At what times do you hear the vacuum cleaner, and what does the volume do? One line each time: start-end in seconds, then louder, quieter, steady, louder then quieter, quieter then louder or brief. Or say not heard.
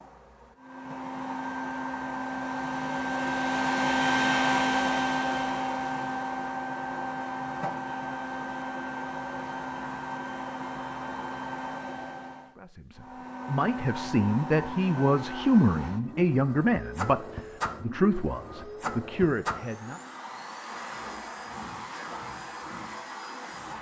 0.0-23.7 quieter.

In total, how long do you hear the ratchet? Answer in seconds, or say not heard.
not heard.